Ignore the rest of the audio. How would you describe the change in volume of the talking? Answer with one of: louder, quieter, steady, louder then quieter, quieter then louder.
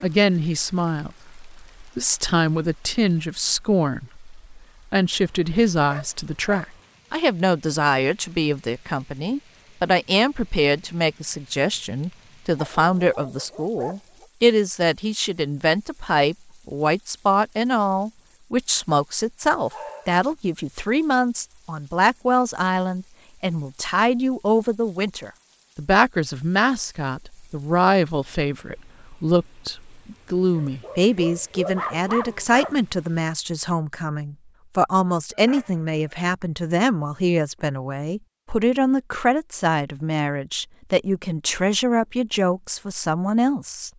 steady.